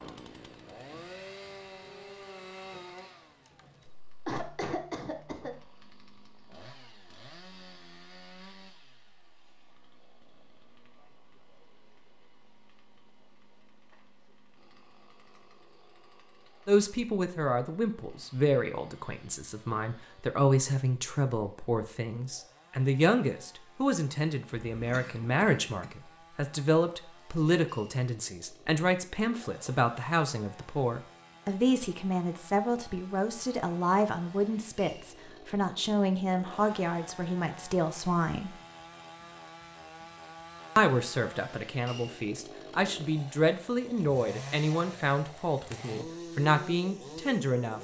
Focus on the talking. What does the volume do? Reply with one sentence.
The volume of the talking stays about the same.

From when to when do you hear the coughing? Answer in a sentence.
The coughing can be heard from 4.2 to 5.6 s and from 24.8 to 25.9 s.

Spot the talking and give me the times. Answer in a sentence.
You can hear the talking from 16.6 to 38.5 s and from 40.8 to 47.7 s.